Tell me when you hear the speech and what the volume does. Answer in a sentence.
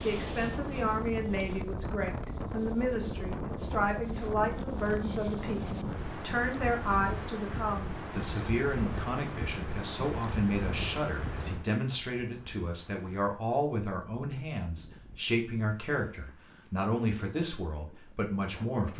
The speech can be heard from 0.0 to 18.9 s, at a steady volume.